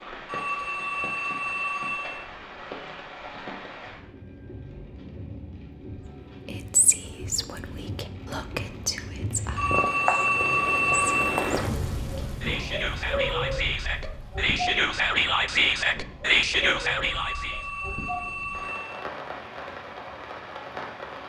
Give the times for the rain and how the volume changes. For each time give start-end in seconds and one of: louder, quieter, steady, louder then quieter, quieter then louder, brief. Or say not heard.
0.0-21.2 louder then quieter.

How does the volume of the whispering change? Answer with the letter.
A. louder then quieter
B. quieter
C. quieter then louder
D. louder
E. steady
D.